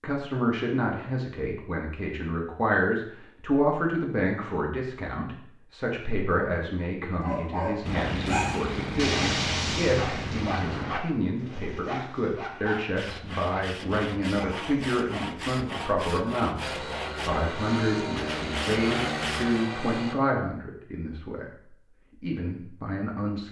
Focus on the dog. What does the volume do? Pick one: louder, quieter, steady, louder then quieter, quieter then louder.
quieter.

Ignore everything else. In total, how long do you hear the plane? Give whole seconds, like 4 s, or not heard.
7 s.